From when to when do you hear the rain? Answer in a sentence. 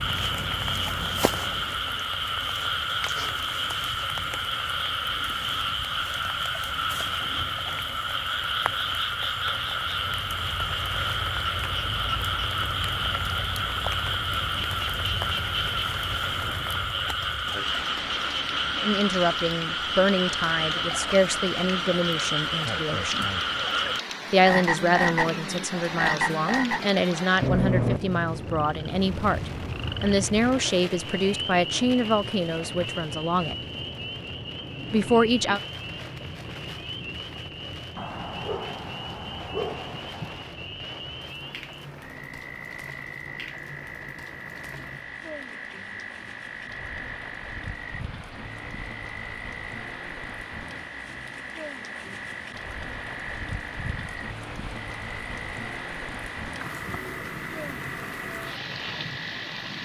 You can hear the rain from 0.0 to 59.7 s.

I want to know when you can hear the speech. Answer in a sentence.
The speech can be heard from 18.8 to 23.2 s, from 24.3 to 33.5 s and from 34.9 to 35.6 s.